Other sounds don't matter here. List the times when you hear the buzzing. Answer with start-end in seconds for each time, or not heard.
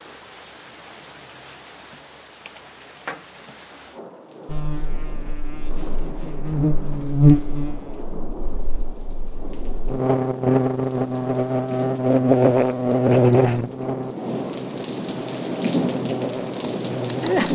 4.5-17.4.